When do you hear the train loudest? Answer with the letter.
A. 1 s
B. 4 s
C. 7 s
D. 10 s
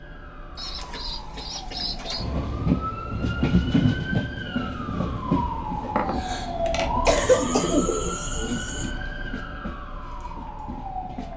B.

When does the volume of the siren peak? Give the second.
7 s.